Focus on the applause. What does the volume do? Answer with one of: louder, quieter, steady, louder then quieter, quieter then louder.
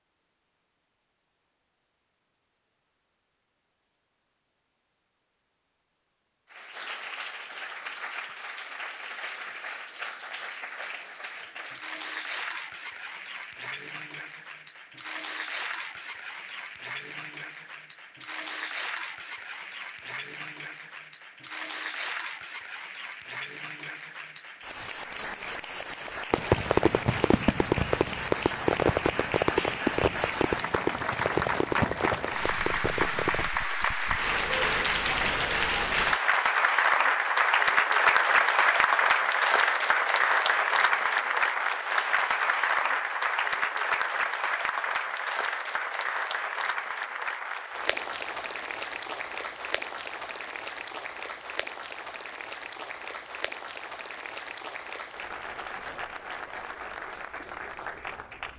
louder then quieter.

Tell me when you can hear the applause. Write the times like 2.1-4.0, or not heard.
6.5-58.5.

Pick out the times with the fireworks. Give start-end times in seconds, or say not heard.
26.3-33.5.